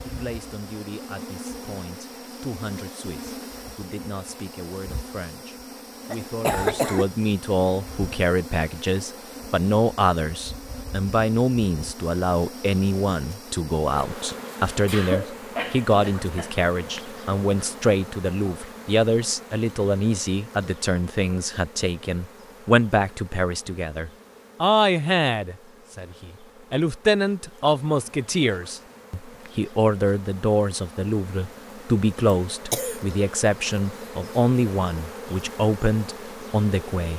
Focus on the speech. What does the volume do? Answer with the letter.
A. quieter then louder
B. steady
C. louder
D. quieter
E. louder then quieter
C.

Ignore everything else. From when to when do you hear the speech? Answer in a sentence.
The speech can be heard from 0.1 to 37.1 s.